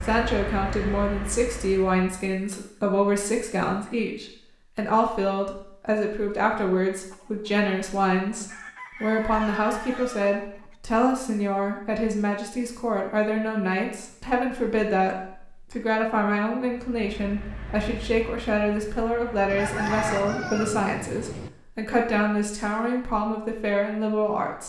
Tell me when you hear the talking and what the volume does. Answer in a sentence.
The talking can be heard from 0.0 to 24.6 s, at a steady volume.